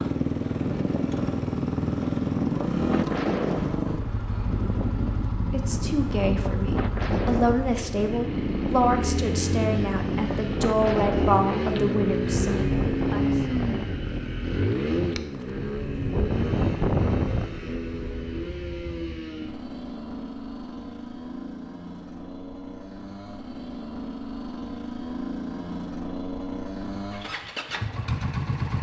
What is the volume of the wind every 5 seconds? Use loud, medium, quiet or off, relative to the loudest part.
loud, loud, loud, loud, off, off.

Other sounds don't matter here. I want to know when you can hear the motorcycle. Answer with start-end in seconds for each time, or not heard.
0.0-28.7.